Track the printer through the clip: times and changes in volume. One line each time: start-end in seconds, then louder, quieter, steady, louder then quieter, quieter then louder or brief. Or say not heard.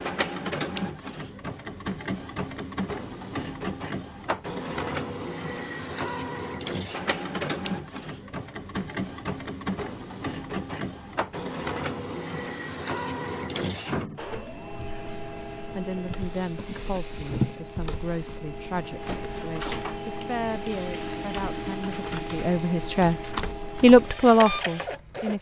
0.0-25.3 steady.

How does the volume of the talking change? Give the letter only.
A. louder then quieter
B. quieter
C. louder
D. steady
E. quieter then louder
C.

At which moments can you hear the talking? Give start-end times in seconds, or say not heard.
15.8-25.3.